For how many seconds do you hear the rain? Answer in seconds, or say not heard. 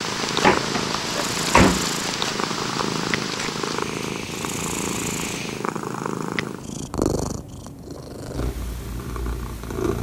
6 s.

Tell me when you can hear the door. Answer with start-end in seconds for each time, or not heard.
0.4-1.9.